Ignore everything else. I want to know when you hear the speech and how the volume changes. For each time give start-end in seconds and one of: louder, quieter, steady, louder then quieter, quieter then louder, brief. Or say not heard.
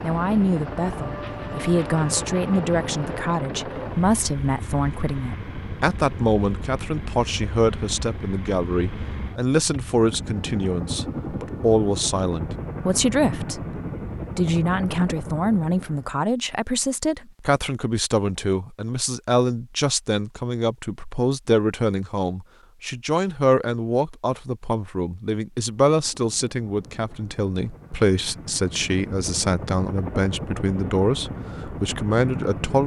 0.0-13.7 steady
14.3-32.8 steady.